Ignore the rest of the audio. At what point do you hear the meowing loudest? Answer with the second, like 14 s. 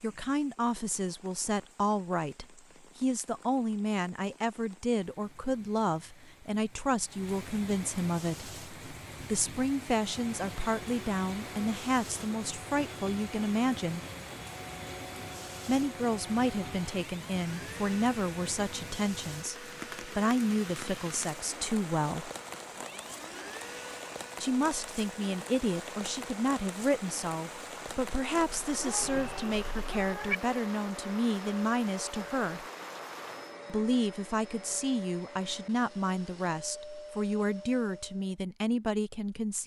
30 s.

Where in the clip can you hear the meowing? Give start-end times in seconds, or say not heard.
28.6-30.4.